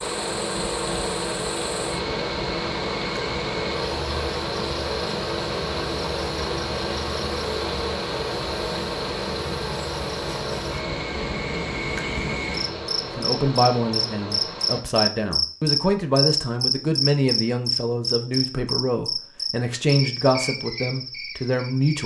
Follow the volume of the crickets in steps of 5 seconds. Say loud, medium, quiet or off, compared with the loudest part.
quiet, quiet, medium, loud, medium.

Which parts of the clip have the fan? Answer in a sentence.
The fan can be heard from 0.0 to 14.8 s.